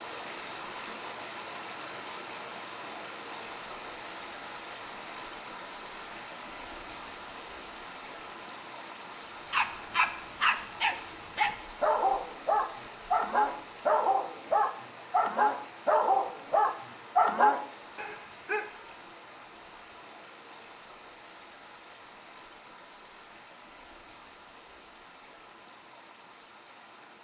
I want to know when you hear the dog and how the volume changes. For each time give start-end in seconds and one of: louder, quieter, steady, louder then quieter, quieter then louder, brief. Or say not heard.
9.5-18.6 steady.